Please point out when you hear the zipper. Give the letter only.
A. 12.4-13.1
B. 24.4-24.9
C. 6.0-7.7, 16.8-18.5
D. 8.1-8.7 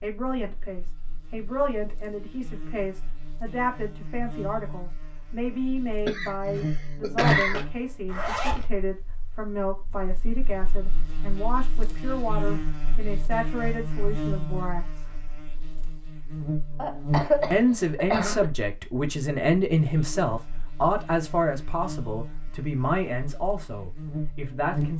D.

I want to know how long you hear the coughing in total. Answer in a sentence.
The coughing can be heard for 3 seconds in total.